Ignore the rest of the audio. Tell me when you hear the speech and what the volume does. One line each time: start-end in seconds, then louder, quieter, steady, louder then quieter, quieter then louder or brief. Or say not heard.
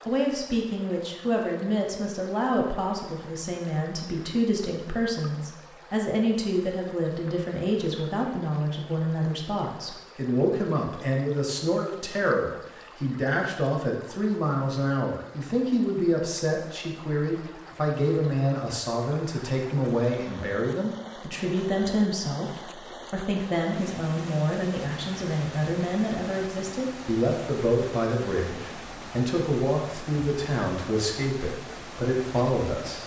0.1-33.0 steady.